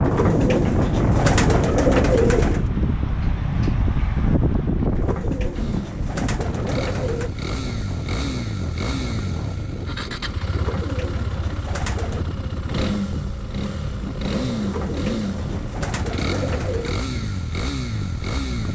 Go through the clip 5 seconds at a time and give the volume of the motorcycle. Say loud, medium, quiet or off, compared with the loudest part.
off, loud, loud, loud.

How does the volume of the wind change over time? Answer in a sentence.
The volume of the wind goes down.